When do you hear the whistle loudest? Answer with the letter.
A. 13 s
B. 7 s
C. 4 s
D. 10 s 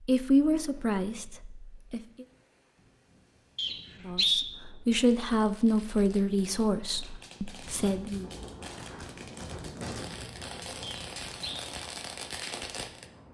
C.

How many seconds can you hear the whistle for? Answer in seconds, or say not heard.
2 s.